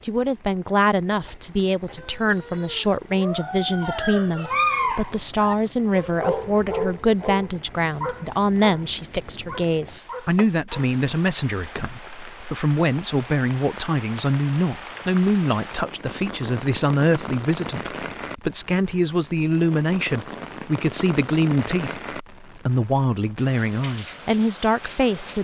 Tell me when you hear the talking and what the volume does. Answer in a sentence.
The talking can be heard from 0.1 to 25.4 s, at a steady volume.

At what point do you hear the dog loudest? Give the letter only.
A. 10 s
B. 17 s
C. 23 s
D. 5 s
D.